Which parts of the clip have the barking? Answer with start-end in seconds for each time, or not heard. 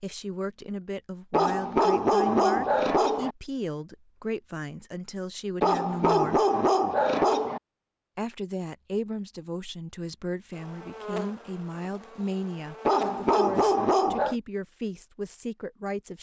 1.3-3.4, 5.6-7.6, 12.8-14.3.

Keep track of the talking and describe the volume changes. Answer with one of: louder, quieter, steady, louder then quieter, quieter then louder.
steady.